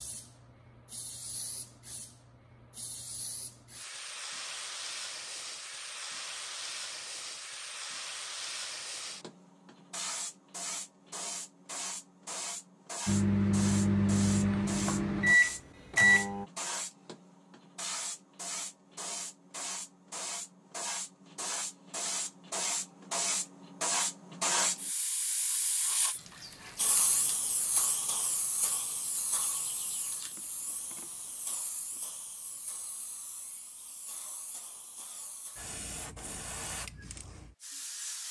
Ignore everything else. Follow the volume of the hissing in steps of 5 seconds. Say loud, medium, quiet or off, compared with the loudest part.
medium, medium, medium, medium, loud, loud, quiet, medium.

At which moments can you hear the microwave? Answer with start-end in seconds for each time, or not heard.
13.1-16.4.